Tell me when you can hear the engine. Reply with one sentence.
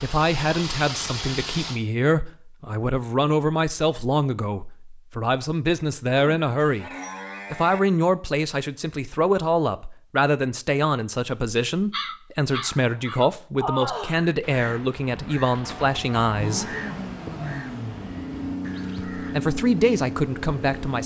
The engine can be heard from 0.0 to 1.8 s and from 16.3 to 21.0 s.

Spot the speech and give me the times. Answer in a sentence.
You can hear the speech from 0.0 to 6.9 s, from 7.5 to 16.8 s and from 19.1 to 21.0 s.